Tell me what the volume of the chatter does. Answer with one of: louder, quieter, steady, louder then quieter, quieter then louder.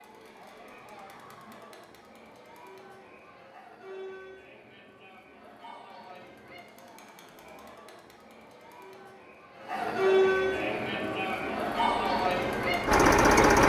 louder.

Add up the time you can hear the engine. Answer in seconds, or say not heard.
3 s.